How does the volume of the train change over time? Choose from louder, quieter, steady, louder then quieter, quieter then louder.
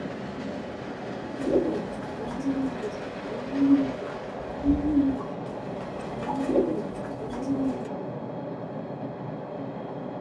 steady.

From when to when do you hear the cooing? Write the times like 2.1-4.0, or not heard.
1.4-7.9.